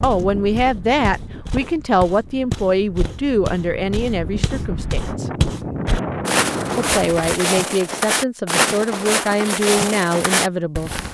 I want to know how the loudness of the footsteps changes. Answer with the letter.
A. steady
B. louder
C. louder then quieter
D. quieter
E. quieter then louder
B.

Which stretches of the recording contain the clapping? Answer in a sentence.
The clapping can't be heard in this clip.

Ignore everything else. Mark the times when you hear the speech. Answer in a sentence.
You can hear the speech from 0.0 to 5.3 s and from 6.8 to 10.9 s.